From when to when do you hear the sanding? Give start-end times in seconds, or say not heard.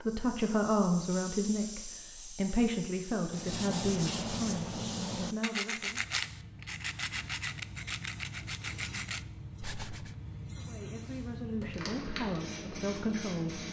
3.3-10.2.